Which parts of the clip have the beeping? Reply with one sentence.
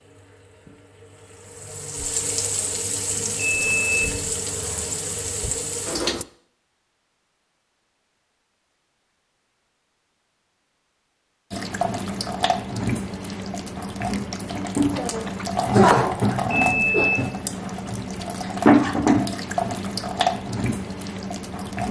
You can hear the beeping from 3.4 to 4.0 s and from 16.5 to 17.2 s.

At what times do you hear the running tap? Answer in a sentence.
The running tap can be heard from 0.0 to 6.2 s and from 11.5 to 21.8 s.